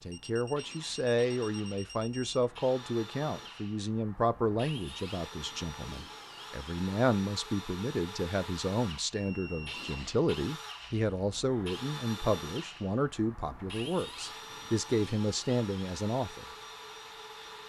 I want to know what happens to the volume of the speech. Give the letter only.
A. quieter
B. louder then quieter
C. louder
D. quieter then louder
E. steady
E.